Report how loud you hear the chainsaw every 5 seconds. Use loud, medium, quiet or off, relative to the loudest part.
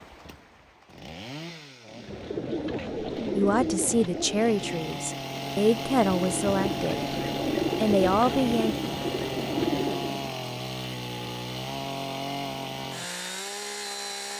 medium, loud, loud.